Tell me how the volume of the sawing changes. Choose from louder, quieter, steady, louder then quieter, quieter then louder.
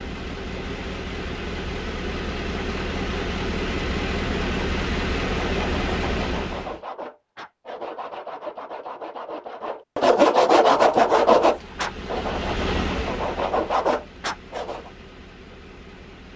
louder then quieter.